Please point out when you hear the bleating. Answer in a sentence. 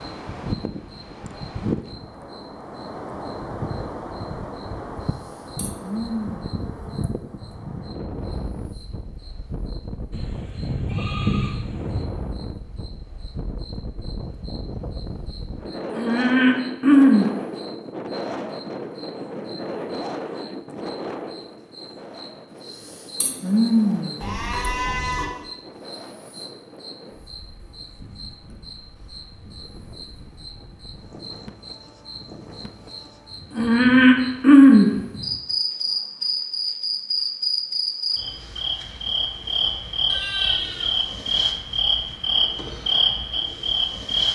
You can hear the bleating from 10.1 to 12.0 s, from 24.2 to 25.2 s and from 40.0 to 41.0 s.